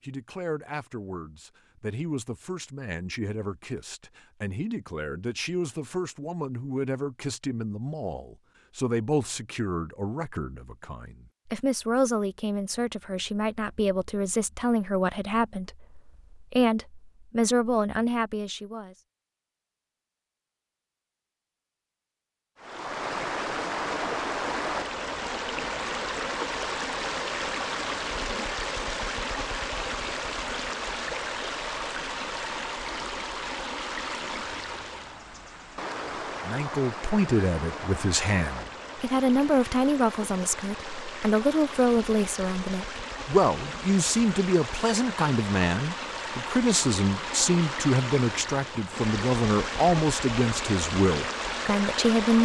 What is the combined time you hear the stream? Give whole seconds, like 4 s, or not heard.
30 s.